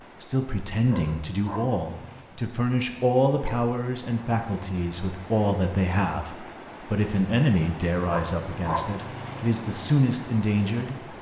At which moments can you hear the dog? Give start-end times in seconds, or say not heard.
0.8-2.2, 8.1-9.4.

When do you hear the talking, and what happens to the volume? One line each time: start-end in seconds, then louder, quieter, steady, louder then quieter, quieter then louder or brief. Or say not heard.
0.2-11.1 steady.